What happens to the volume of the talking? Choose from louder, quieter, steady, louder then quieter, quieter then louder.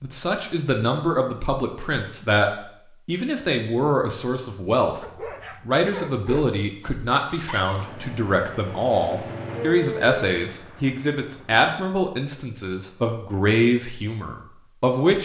steady.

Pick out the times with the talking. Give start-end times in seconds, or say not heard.
0.0-5.0, 5.7-15.2.